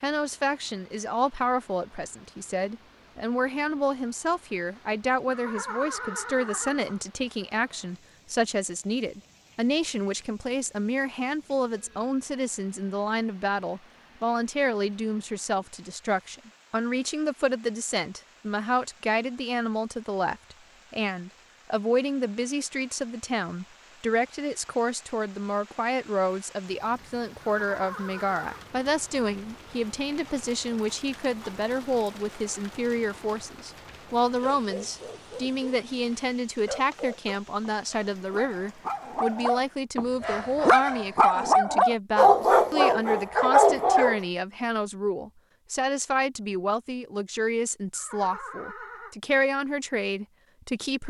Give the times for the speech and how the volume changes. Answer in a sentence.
The speech can be heard from 0.0 to 51.0 s, at a steady volume.